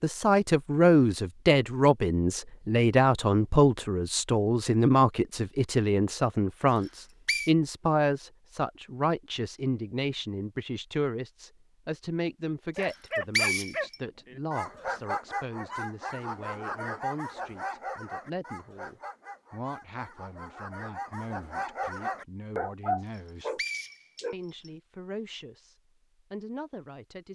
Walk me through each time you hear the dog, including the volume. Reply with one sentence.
You can hear the dog from 12.8 to 24.4 s, getting quieter then louder.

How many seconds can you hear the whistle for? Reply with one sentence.
The whistle can be heard for 3 seconds in total.